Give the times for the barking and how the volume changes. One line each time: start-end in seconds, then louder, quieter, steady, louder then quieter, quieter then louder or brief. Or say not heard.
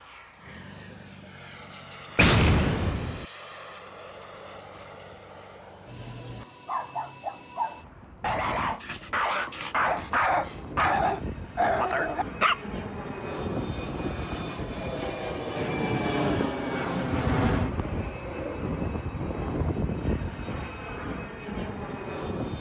6.4-12.6 louder.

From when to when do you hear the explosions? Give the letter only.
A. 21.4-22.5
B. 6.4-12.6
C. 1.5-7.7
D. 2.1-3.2
D.